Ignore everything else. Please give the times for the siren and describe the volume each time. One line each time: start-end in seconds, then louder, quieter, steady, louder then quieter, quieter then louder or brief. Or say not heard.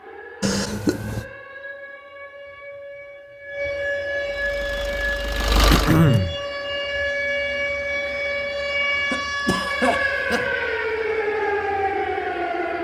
0.0-12.7 louder.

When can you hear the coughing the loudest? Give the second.
6 s.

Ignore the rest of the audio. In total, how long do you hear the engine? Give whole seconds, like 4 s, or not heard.
2 s.